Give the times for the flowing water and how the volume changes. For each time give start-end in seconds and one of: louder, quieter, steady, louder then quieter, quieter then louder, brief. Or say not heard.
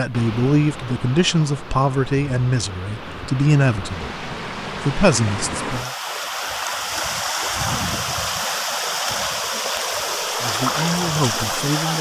0.0-11.9 louder.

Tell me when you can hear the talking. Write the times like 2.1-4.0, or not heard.
0.0-5.9, 10.4-11.9.